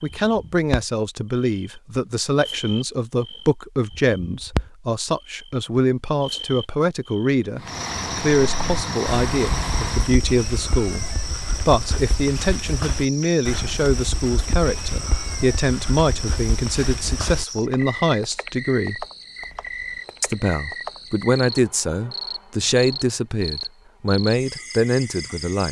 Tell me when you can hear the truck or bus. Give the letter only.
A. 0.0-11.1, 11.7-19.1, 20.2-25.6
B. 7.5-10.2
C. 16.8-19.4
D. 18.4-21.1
B.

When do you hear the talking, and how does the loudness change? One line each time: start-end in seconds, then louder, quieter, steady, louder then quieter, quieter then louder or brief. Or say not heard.
0.0-11.1 steady
11.7-19.1 steady
20.2-25.6 steady.